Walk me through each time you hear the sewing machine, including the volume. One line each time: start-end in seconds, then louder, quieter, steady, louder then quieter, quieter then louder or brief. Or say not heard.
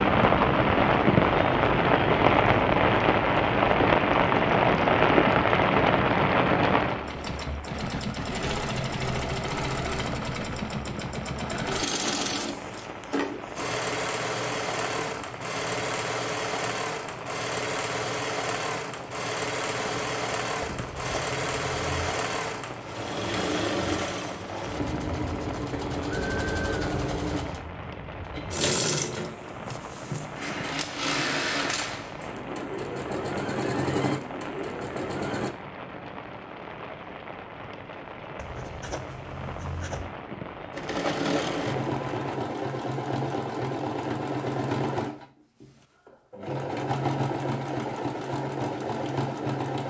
6.9-35.5 steady
40.7-49.8 steady.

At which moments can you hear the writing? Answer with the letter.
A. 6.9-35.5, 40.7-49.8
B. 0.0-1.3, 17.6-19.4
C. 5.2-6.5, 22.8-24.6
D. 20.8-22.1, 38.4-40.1
D.